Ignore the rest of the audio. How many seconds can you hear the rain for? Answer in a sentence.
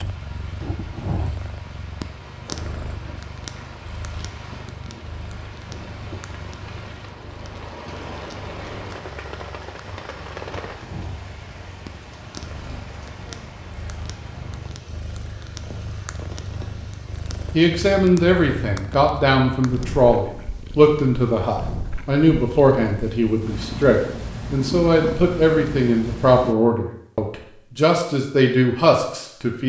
The rain can be heard for 18 seconds in total.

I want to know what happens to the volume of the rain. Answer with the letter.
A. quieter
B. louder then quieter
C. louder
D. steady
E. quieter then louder
B.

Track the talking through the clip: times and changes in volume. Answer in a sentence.
You can hear the talking from 17.5 to 29.6 s, at a steady volume.